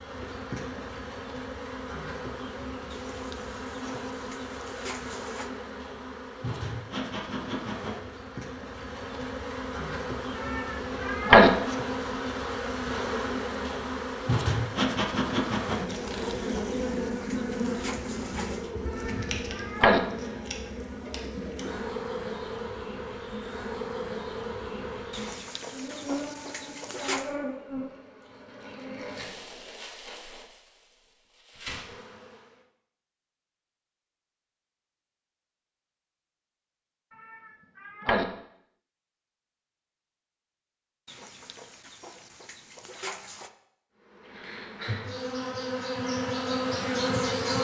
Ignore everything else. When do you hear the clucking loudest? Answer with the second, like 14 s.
27 s.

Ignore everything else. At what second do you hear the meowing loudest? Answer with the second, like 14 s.
11 s.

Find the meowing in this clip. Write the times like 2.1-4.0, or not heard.
10.4-11.5, 18.9-20.0, 37.2-38.2.